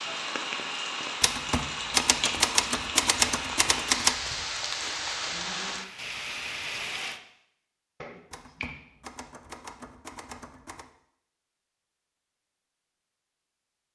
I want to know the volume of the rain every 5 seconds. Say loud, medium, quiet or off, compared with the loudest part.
loud, loud, off.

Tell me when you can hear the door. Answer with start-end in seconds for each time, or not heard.
not heard.